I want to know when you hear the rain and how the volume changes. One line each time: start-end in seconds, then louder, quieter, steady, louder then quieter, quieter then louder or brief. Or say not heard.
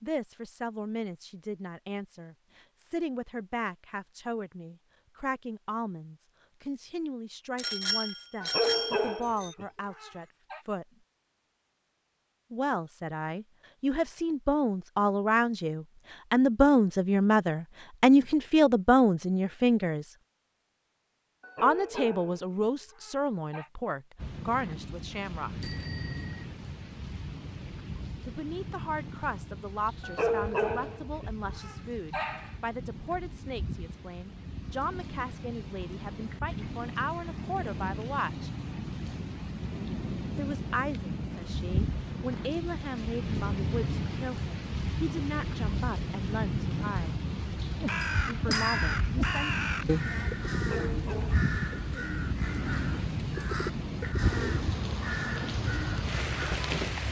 24.1-57.0 louder.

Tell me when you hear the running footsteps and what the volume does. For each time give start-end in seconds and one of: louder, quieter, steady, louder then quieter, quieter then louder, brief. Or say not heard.
not heard.